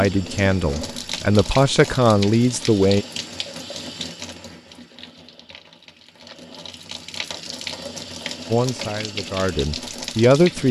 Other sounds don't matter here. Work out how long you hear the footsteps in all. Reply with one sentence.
You can't hear the footsteps here.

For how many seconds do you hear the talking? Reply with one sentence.
The talking can be heard for 5 seconds in total.